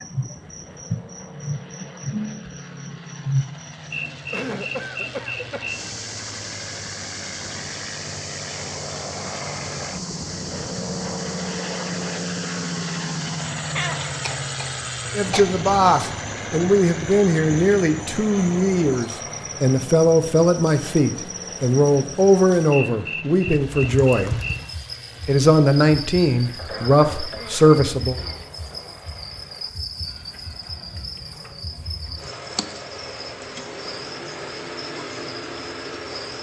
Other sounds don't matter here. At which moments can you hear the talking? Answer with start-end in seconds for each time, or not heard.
15.2-24.4, 25.2-28.1.